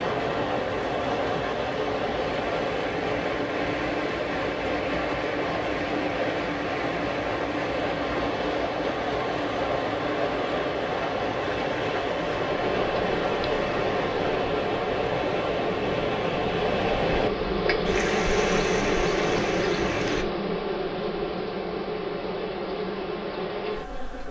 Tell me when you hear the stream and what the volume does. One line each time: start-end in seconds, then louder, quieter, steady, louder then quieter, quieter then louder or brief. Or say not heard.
0.0-20.2 steady.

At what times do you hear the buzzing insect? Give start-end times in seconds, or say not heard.
12.5-24.2.